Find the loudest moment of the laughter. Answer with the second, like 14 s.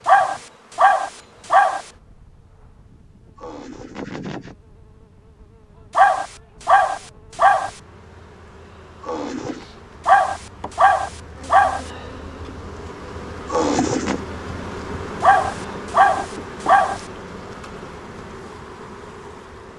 14 s.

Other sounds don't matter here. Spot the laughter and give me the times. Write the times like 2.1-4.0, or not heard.
3.4-4.5, 9.0-9.7, 13.4-14.2.